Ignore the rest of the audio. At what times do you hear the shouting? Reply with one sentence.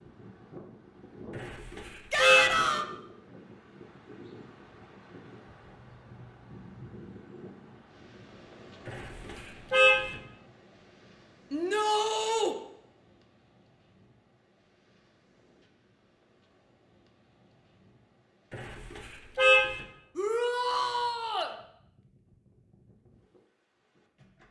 You can hear the shouting from 2.1 to 2.9 s, from 11.5 to 12.6 s and from 20.1 to 21.6 s.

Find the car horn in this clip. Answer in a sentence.
The car horn can be heard from 1.4 to 2.6 s, from 8.8 to 10.2 s and from 18.5 to 19.9 s.